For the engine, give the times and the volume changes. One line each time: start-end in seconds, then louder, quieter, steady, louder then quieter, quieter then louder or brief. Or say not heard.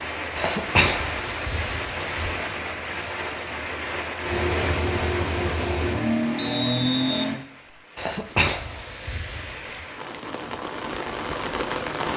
0.0-7.3 louder.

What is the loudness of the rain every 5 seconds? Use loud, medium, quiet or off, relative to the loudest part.
loud, medium, loud.